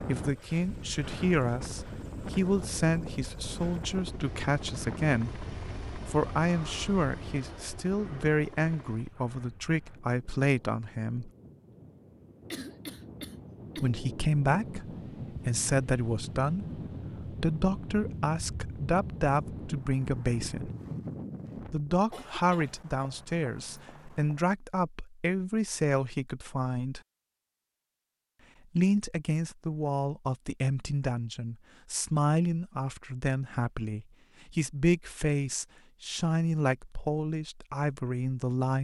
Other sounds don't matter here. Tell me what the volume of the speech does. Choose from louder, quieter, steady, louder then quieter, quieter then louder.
steady.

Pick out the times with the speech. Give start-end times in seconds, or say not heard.
0.1-11.3, 13.8-20.7, 21.7-27.0, 28.8-38.8.